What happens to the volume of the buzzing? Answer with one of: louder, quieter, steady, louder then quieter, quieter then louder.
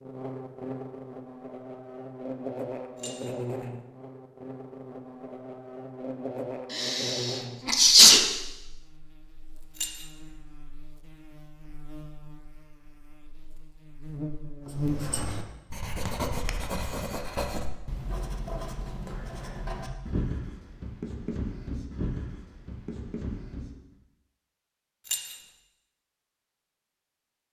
quieter then louder.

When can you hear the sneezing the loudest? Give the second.
8 s.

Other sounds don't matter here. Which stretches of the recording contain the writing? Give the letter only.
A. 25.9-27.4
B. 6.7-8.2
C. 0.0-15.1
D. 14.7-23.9
D.